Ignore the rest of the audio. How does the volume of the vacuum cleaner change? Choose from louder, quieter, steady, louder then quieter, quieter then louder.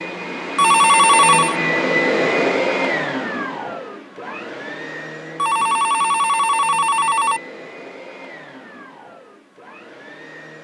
quieter.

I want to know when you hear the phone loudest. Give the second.
1 s.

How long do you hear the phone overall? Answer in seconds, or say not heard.
3 s.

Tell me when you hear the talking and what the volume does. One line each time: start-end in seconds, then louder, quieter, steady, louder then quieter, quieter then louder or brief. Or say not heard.
not heard.